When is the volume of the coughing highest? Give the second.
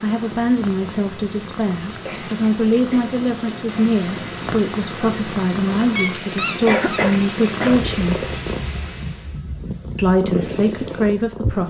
7 s.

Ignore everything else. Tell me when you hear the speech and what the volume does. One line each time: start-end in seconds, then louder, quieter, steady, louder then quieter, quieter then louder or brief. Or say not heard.
0.0-8.2 steady
9.9-11.6 brief.